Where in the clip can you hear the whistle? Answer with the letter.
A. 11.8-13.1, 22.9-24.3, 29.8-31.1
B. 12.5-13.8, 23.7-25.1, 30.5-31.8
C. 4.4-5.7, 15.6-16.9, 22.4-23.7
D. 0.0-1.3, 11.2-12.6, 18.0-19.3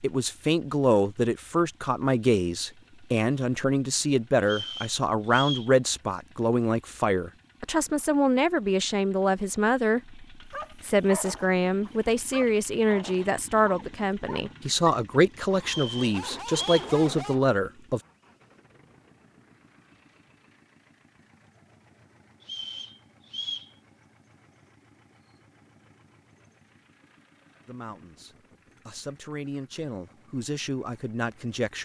C.